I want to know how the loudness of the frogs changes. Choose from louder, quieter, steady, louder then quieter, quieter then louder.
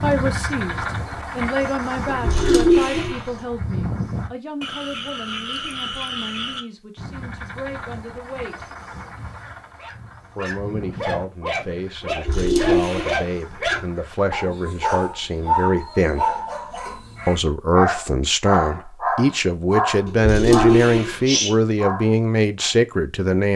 quieter.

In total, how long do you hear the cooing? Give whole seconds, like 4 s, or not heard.
4 s.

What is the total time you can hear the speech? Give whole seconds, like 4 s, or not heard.
21 s.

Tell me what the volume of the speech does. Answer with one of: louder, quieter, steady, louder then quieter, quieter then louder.
quieter then louder.